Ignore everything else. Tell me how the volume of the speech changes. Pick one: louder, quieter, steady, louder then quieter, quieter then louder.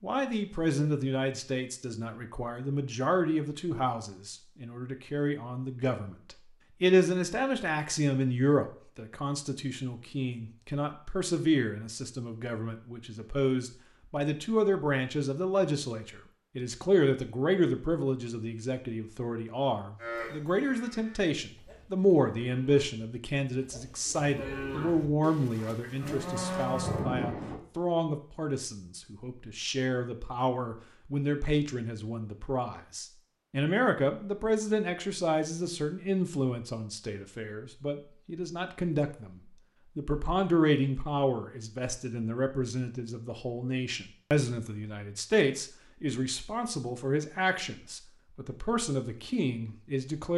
steady.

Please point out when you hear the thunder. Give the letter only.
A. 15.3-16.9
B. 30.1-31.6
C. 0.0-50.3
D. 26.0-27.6
D.